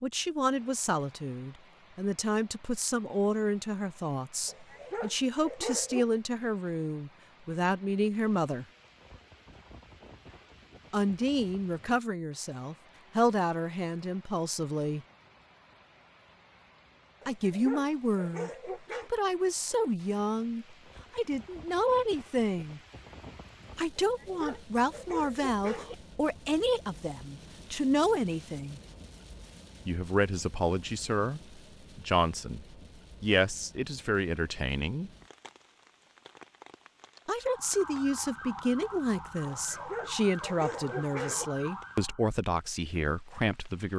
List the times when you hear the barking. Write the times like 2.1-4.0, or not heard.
4.5-6.0, 17.2-19.1, 24.0-25.9, 39.5-41.5.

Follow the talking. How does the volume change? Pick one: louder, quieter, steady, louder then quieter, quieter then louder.
steady.